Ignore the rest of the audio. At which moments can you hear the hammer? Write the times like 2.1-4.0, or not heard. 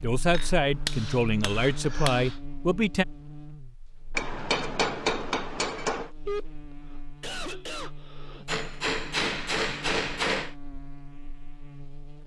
0.3-2.4, 4.2-6.1, 8.4-10.6.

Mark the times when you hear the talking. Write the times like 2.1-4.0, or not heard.
0.0-3.0.